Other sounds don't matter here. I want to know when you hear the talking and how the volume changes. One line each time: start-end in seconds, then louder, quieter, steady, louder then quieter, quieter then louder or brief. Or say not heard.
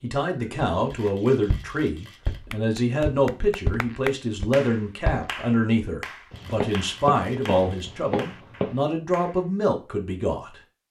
0.0-10.6 steady.